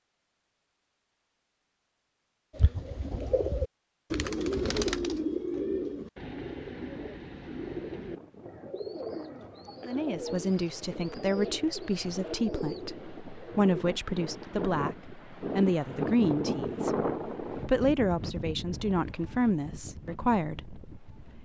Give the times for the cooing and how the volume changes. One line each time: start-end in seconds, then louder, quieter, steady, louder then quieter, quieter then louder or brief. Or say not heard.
2.5-13.8 quieter.